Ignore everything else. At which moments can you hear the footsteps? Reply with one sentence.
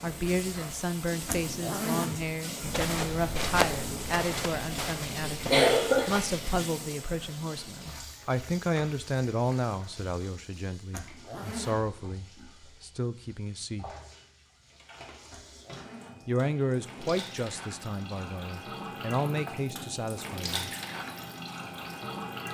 The footsteps can be heard from 2.6 to 6.4 s.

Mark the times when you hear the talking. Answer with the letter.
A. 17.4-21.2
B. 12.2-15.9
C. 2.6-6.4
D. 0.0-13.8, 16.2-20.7
D.